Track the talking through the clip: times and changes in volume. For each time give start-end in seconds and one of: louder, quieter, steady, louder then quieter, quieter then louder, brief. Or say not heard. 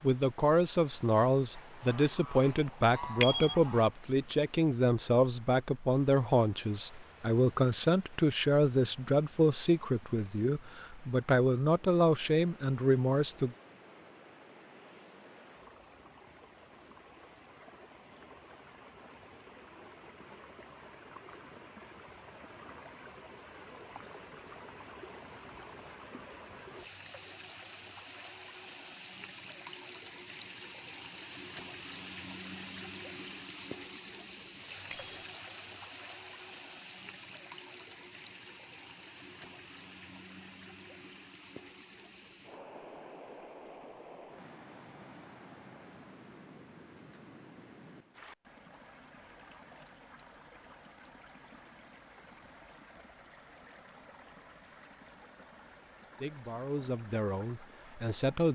0.0-13.6 steady
56.2-58.4 brief.